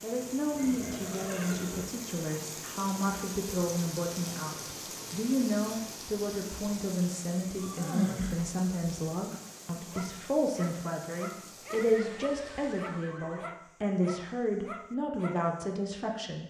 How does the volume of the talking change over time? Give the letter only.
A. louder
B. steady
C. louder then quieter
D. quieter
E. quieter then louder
B.